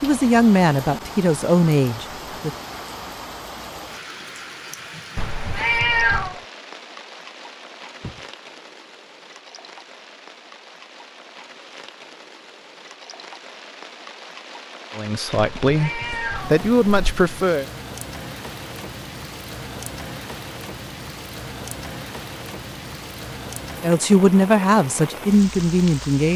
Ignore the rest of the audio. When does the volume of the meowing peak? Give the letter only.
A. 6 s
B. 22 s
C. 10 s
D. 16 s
A.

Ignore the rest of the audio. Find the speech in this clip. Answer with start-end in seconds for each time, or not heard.
0.0-2.5, 14.9-17.6, 23.8-26.3.